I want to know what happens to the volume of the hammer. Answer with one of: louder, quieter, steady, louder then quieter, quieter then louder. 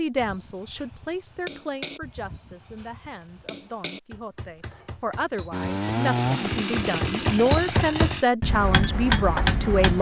quieter then louder.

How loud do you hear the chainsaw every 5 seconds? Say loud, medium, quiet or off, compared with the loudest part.
off, loud.